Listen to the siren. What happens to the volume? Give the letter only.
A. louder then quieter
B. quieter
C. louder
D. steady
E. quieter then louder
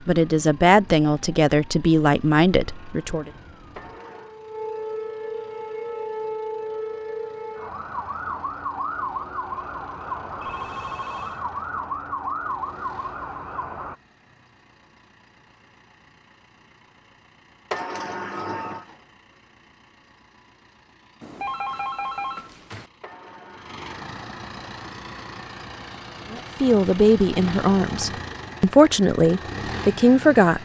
C.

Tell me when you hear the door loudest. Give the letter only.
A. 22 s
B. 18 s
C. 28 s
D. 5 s
B.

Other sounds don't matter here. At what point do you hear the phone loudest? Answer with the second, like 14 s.
22 s.